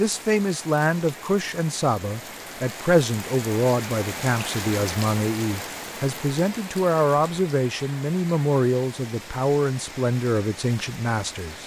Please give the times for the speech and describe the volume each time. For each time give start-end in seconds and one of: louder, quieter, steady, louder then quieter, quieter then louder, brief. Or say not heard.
0.0-11.6 steady.